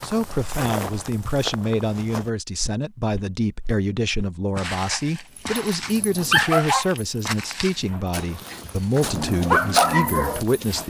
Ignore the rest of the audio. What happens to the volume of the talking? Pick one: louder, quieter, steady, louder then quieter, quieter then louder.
steady.